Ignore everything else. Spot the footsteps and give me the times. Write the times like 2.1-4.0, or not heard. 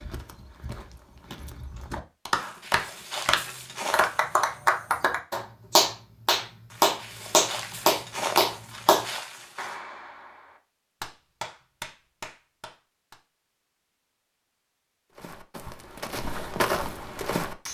0.0-4.6, 6.7-9.8, 15.2-17.6.